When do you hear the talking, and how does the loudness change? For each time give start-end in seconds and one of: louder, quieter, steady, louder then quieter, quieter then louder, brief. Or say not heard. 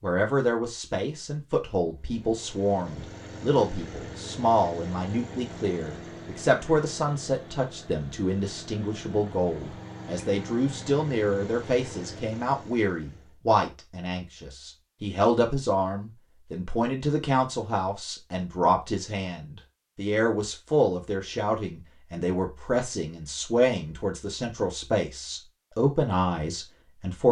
0.0-27.2 steady.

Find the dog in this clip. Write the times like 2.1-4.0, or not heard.
not heard.